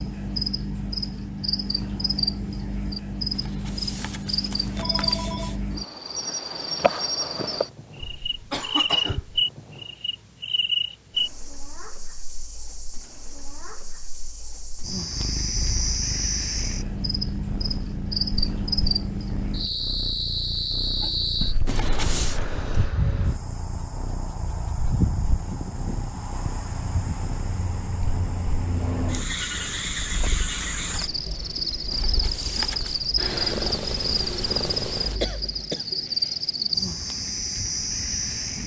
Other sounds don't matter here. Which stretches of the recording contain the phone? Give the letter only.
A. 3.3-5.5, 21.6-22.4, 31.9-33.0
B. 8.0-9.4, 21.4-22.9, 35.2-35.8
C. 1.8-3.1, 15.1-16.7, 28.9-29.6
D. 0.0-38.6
A.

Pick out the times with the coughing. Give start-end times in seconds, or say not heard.
8.0-9.4, 21.4-22.9, 35.2-35.8.